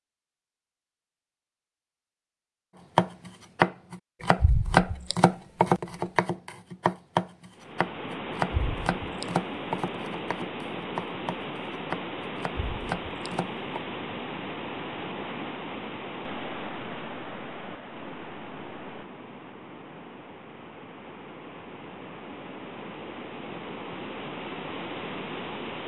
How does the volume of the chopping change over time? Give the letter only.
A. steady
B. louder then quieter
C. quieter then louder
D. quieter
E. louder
D.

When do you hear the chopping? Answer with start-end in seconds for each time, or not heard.
3.0-13.8.